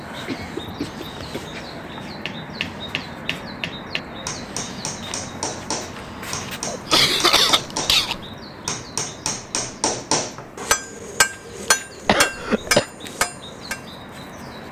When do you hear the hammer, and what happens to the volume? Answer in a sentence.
The hammer can be heard from 1.9 to 13.8 s, getting louder.